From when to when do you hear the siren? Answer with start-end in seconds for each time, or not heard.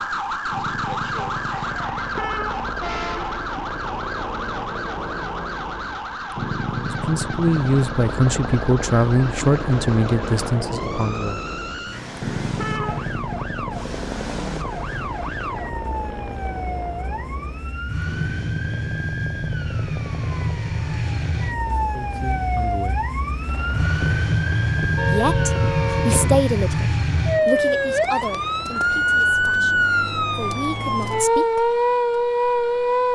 0.0-33.1.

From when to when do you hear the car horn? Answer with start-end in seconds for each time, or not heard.
1.5-2.6, 11.9-13.1, 24.0-26.4.